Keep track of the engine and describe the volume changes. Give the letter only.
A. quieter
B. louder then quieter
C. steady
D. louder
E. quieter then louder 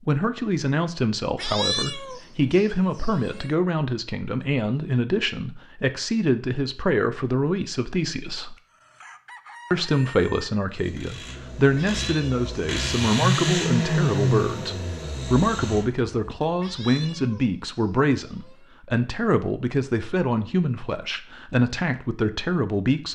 B.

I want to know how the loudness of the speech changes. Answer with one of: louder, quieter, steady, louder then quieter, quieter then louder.
steady.